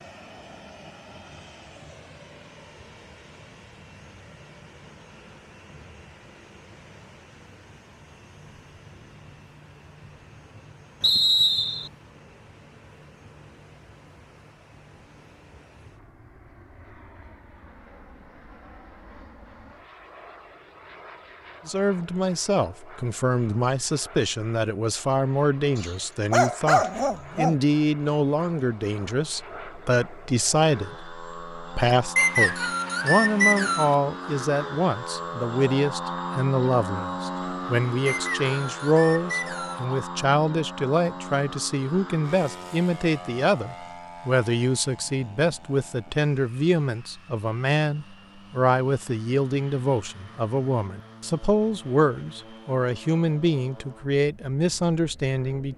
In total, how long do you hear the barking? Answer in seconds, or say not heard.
2 s.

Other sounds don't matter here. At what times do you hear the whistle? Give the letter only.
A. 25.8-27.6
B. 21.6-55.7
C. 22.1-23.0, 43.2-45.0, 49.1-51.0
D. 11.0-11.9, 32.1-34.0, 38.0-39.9
D.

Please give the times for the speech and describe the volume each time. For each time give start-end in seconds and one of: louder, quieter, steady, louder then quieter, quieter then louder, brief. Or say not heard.
21.6-55.7 steady.